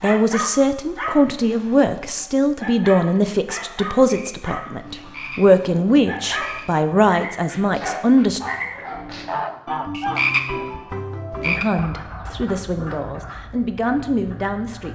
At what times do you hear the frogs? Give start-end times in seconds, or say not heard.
4.0-14.8.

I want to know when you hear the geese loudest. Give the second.
9 s.